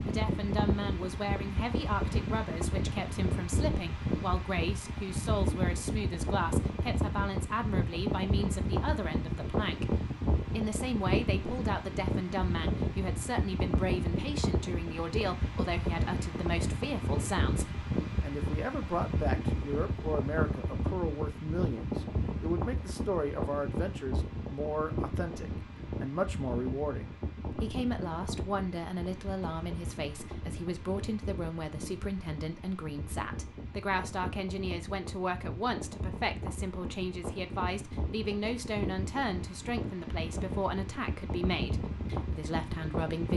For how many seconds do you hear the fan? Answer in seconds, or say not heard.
43 s.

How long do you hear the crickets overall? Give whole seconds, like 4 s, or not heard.
not heard.